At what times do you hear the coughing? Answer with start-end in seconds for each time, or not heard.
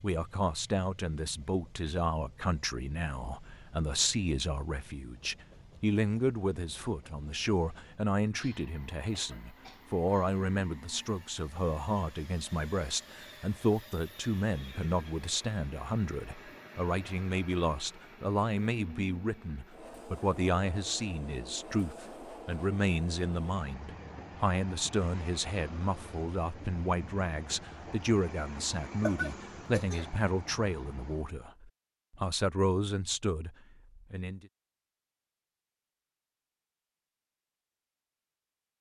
8.3-10.4, 29.0-30.1.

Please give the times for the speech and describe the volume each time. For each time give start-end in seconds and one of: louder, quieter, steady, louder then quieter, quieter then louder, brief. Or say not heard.
0.0-34.5 steady.